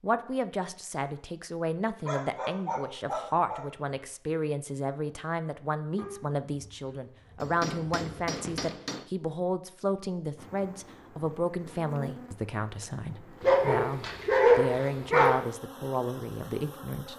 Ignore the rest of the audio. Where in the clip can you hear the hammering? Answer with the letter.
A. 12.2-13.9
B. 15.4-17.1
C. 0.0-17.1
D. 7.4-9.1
D.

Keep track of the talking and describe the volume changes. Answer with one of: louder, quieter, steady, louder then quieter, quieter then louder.
steady.